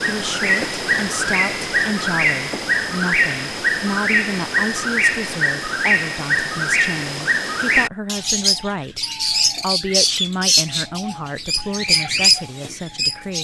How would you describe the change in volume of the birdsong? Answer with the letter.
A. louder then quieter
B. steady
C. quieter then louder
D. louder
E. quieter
B.